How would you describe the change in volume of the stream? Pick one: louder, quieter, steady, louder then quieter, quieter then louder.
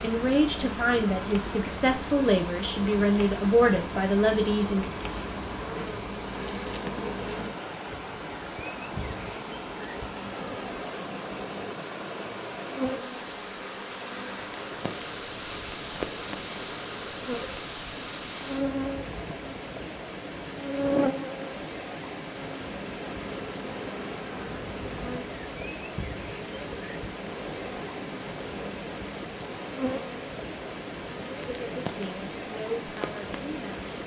steady.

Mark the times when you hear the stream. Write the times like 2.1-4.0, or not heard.
0.0-34.0.